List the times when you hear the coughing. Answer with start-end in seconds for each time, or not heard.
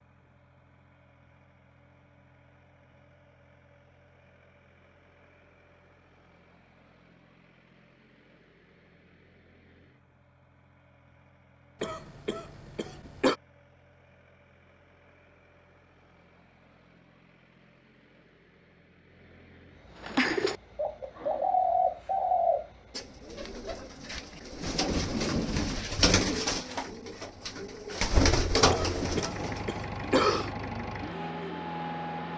11.8-13.3, 28.7-30.5.